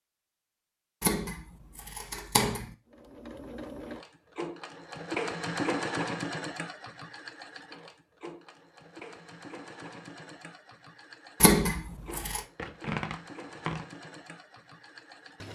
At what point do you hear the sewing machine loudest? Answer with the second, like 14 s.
6 s.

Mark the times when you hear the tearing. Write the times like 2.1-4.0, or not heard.
12.1-13.8.